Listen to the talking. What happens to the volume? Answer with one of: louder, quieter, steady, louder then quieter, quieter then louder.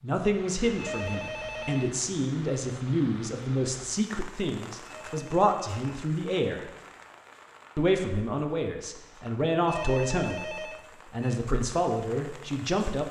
steady.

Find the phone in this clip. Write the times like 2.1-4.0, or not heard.
0.8-2.0, 4.8-5.8, 9.7-11.4.